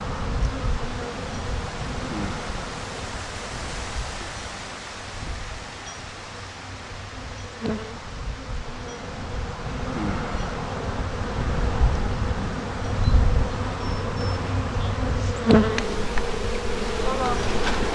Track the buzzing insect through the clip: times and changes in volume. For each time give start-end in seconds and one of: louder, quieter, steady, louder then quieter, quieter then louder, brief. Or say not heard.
0.0-17.9 quieter then louder.